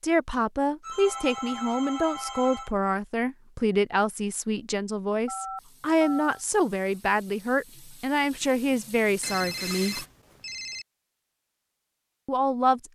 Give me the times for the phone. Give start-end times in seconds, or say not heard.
0.8-2.7, 5.2-6.4, 9.2-10.8.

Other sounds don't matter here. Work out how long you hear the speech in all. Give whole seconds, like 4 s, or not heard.
11 s.